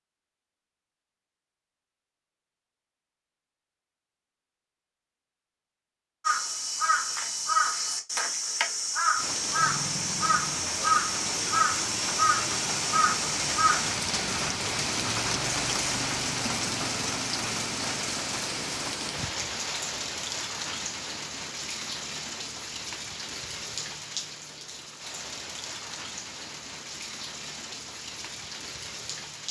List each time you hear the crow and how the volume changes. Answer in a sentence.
You can hear the crow from 6.2 to 13.9 s, at a steady volume.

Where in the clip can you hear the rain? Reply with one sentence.
The rain can be heard from 9.2 to 29.4 s.